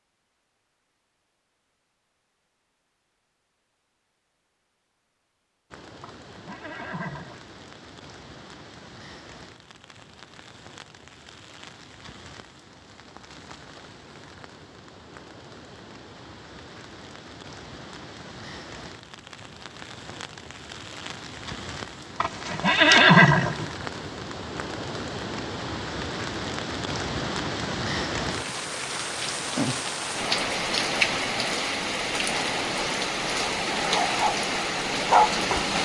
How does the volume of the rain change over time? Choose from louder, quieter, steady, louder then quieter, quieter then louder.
louder.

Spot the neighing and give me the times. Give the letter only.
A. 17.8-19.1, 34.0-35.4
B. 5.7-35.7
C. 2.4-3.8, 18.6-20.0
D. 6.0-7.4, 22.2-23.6
D.